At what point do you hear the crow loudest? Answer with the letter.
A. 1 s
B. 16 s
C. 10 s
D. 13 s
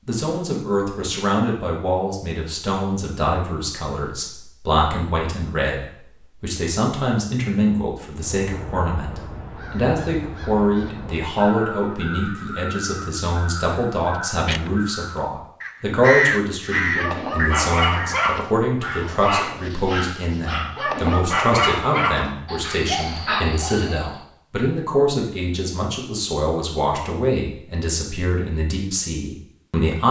B.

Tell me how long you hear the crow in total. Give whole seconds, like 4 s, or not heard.
10 s.